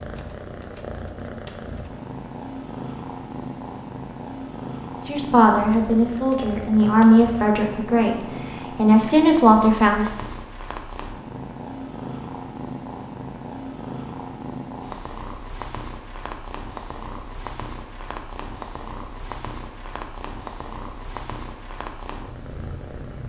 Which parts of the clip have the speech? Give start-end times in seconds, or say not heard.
5.0-10.1.